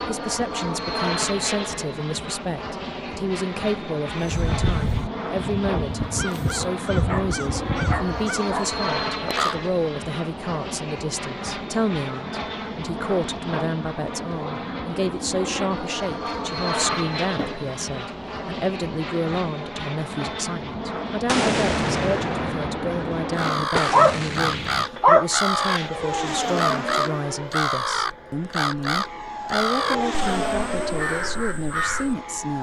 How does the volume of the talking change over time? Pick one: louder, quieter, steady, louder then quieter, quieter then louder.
steady.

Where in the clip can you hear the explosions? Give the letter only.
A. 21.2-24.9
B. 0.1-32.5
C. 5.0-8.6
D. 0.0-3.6
A.